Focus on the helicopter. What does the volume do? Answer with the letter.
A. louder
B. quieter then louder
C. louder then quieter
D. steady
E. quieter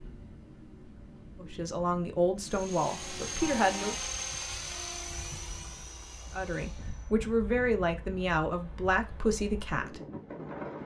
E.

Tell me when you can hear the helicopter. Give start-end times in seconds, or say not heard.
2.4-7.1.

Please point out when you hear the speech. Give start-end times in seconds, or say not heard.
1.4-4.0, 6.3-10.0.